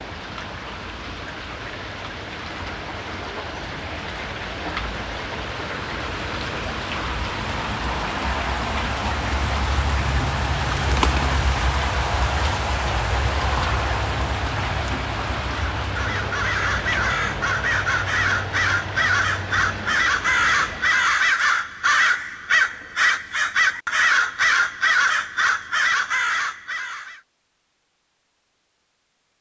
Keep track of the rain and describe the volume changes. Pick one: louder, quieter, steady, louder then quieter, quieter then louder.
louder then quieter.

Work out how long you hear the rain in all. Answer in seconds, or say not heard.
21 s.